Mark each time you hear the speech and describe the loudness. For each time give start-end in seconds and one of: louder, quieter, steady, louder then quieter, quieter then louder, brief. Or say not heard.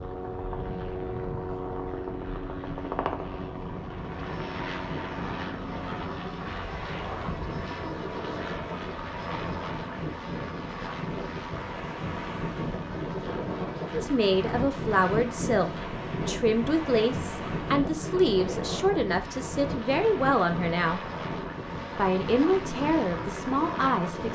13.9-21.0 steady
21.9-24.3 brief.